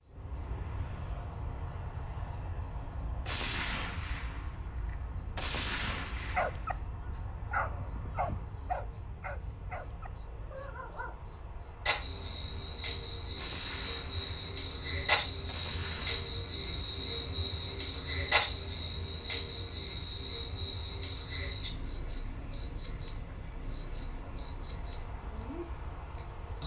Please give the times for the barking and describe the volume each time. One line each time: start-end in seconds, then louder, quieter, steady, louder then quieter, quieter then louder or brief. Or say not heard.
6.2-11.2 louder then quieter.